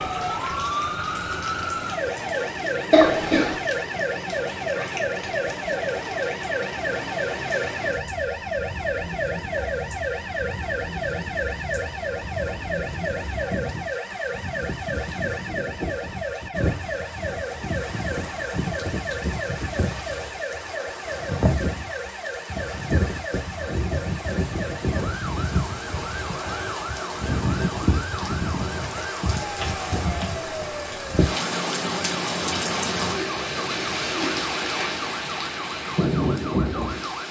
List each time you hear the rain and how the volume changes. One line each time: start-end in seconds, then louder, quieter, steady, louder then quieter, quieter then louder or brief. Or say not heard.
0.0-37.2 louder.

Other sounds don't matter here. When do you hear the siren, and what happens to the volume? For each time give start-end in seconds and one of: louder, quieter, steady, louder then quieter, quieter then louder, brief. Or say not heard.
0.0-37.2 quieter.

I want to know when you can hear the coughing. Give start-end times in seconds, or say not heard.
2.9-3.6.